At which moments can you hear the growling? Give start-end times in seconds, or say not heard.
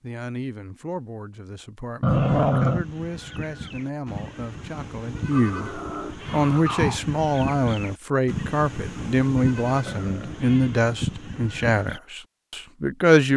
2.0-2.8, 5.3-7.0, 9.8-10.6.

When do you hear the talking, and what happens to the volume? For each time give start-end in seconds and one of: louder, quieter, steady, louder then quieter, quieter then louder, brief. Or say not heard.
0.0-13.3 louder.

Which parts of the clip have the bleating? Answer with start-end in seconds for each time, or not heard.
2.0-12.0.